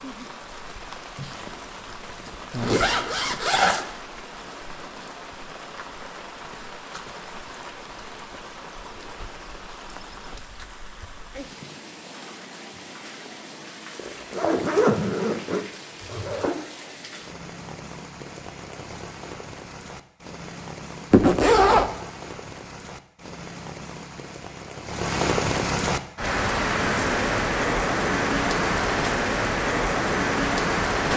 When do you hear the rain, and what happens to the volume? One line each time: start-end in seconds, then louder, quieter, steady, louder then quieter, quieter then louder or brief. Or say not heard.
0.0-31.1 louder.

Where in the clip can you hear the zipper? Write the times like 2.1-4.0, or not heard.
1.1-3.9, 13.9-16.6, 21.1-21.9.